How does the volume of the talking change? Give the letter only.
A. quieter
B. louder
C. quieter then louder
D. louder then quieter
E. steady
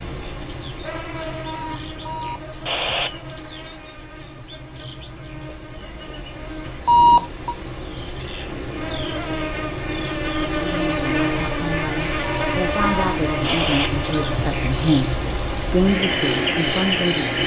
B.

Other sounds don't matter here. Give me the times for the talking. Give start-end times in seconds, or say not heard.
10.6-17.4.